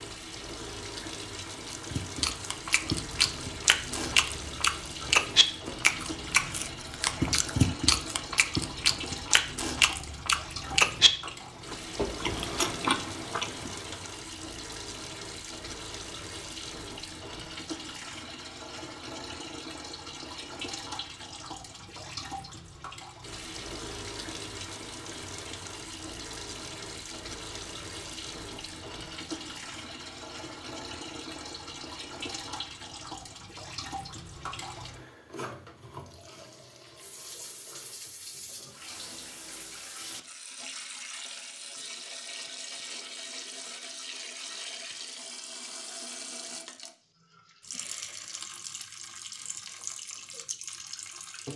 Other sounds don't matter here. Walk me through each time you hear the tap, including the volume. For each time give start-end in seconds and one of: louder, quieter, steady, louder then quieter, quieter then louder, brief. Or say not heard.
0.0-51.5 steady.